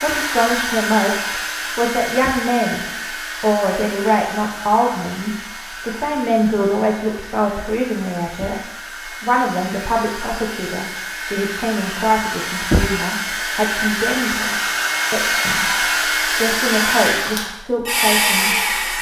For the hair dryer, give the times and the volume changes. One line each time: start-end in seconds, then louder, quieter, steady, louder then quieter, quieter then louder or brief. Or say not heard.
0.0-18.9 quieter then louder.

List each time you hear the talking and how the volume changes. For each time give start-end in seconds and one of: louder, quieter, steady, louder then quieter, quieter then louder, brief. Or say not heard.
0.0-8.6 steady
9.2-18.9 steady.